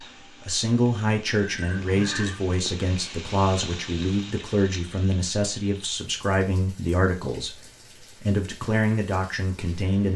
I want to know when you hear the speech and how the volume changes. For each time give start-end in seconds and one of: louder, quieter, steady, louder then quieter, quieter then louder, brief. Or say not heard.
0.0-10.1 steady.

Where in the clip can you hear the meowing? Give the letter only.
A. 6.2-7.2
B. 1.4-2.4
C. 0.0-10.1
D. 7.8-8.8
B.